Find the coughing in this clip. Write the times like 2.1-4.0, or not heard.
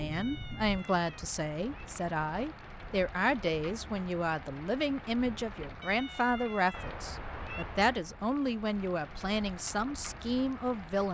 not heard.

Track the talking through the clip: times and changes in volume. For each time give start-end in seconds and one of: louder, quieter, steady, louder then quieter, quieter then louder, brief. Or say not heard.
0.0-11.0 steady.